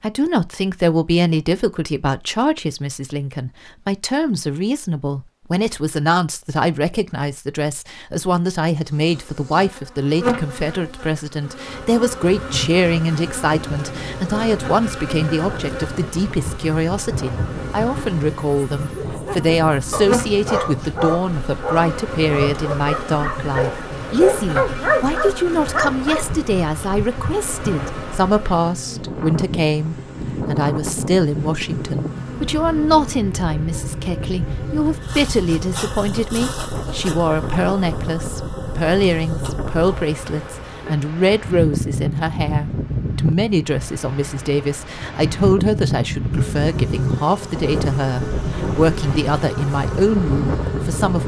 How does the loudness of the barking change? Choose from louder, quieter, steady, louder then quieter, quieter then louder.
louder.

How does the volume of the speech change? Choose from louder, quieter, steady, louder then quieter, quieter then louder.
steady.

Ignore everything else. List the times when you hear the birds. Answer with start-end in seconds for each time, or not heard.
not heard.